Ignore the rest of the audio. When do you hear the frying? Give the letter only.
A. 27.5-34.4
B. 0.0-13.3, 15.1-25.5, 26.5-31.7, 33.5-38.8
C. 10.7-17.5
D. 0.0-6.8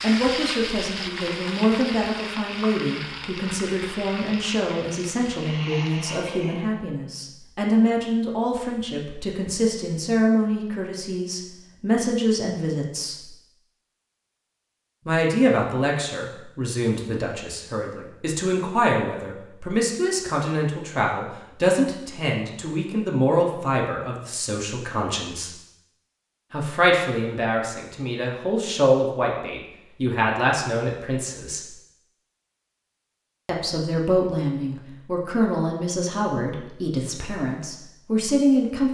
D.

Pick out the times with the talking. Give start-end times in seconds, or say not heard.
0.0-13.3, 15.1-25.5, 26.5-31.7, 33.5-38.8.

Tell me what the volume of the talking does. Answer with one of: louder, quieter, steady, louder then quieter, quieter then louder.
steady.